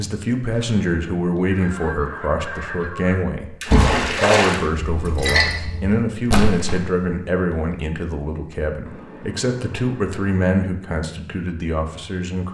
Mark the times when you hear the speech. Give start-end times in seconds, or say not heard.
0.0-12.4.